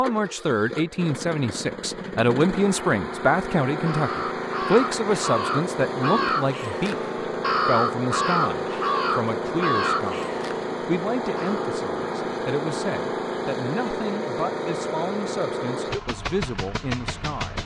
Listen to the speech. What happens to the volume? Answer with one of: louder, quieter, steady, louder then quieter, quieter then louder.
quieter.